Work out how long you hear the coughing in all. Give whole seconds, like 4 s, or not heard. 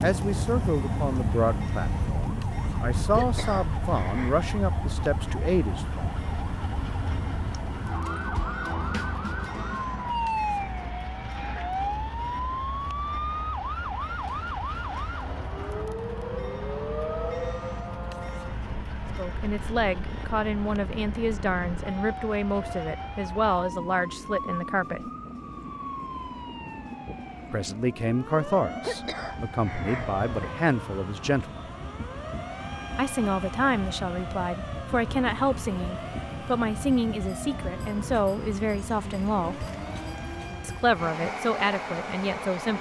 3 s.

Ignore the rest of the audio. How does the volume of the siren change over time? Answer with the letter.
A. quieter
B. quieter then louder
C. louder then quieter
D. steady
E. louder
A.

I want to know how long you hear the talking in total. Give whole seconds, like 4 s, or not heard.
25 s.